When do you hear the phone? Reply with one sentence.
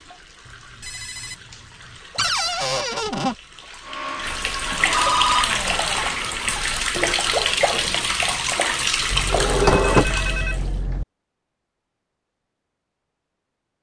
The phone can be heard from 0.5 to 2.0 s, from 4.8 to 5.5 s and from 9.7 to 10.6 s.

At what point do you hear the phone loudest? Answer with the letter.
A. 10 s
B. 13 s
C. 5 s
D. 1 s
C.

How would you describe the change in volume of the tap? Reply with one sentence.
The loudness of the tap goes up.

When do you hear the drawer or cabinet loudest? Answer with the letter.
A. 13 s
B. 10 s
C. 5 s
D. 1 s
B.